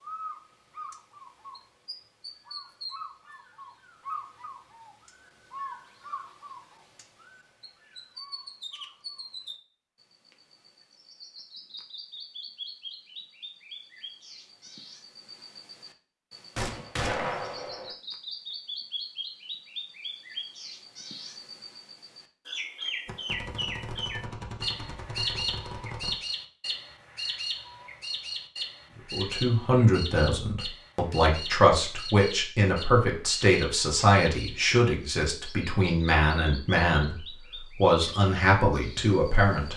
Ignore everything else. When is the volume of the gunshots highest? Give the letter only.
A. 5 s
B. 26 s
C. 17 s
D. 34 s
C.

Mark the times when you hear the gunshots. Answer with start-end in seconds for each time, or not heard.
16.6-17.9, 23.1-26.1.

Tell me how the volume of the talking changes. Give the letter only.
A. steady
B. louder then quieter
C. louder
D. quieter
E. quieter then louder
A.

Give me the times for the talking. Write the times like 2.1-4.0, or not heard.
29.1-39.7.